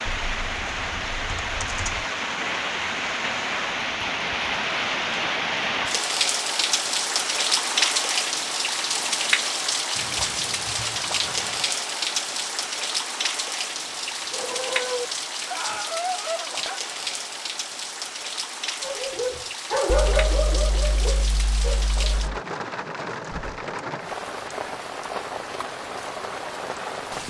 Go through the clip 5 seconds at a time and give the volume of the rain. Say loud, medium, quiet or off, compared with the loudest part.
loud, loud, loud, medium, medium, medium.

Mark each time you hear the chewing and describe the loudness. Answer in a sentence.
You can't hear the chewing here.